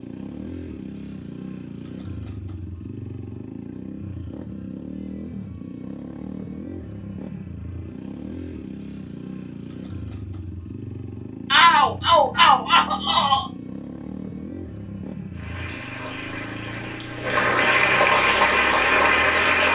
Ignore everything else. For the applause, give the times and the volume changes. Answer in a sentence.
The applause can be heard from 15.3 to 19.7 s, getting louder.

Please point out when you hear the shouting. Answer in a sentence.
The shouting can be heard from 11.5 to 13.5 s.